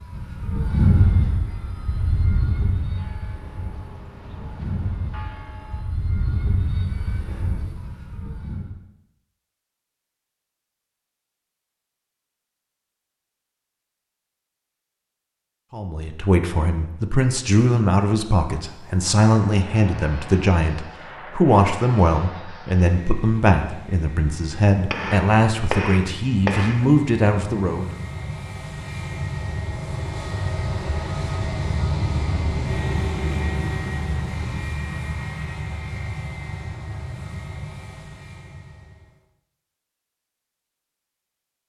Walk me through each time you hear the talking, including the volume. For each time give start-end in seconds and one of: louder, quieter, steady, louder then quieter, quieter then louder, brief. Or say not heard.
15.7-27.9 steady.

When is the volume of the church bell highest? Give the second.
5 s.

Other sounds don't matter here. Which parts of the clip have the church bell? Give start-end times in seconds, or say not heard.
2.7-5.8.